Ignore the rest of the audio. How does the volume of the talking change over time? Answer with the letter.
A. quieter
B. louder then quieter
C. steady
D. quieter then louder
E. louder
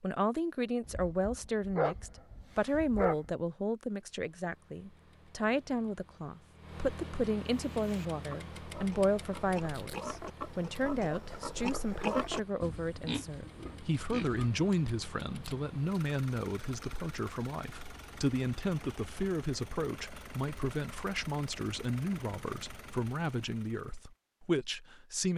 C.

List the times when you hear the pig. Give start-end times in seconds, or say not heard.
7.5-14.6.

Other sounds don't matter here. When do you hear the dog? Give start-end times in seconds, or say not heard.
0.8-3.3.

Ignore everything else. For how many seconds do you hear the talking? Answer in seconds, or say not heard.
25 s.